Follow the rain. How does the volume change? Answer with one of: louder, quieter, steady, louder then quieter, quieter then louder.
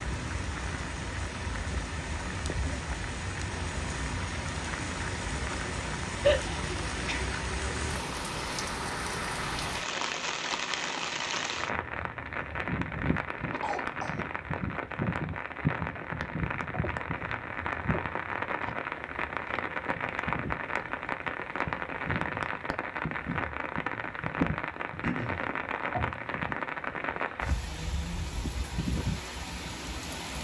steady.